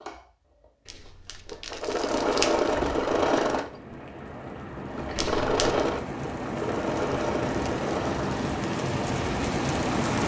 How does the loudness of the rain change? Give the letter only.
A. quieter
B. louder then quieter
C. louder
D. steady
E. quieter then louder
C.